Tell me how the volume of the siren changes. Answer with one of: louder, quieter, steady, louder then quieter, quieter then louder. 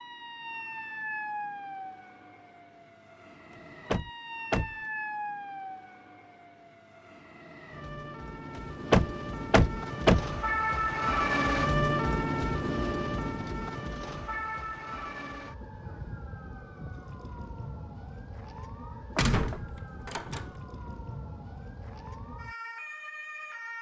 louder then quieter.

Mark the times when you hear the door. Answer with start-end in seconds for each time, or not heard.
3.9-4.8, 8.9-10.3, 19.1-20.5.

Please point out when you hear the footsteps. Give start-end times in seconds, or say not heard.
not heard.